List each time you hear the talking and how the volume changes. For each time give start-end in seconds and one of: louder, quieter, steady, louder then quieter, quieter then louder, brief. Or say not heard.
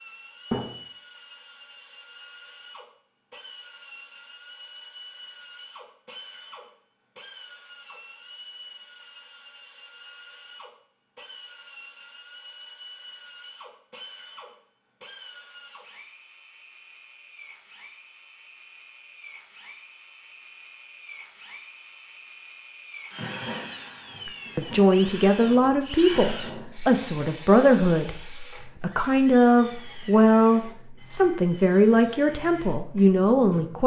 24.2-33.8 steady.